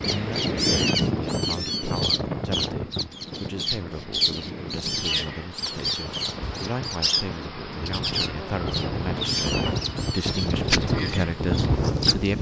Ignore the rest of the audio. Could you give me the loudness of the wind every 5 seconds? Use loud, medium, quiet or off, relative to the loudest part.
loud, medium, loud.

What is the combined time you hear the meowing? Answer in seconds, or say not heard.
6 s.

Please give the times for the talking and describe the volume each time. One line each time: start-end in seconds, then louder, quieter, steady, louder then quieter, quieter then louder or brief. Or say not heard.
0.1-12.3 louder.